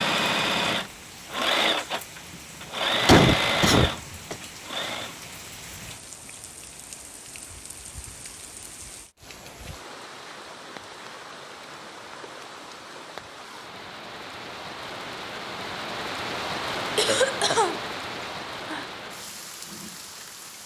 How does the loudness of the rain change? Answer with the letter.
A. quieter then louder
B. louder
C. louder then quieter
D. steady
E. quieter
B.